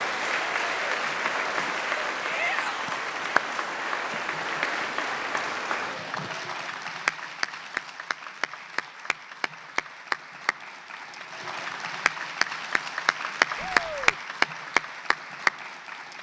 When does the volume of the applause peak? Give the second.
14 s.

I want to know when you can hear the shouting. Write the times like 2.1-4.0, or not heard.
2.2-3.0, 13.6-14.2.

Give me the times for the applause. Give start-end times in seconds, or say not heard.
0.0-16.1.